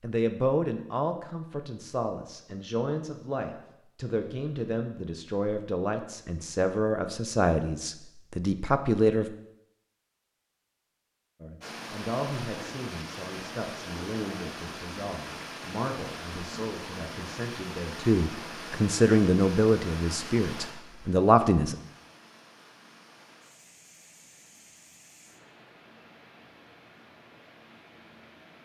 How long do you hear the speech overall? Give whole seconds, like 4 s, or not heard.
20 s.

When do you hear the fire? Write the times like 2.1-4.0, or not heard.
not heard.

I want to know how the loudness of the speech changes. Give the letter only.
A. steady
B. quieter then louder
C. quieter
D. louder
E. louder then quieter
B.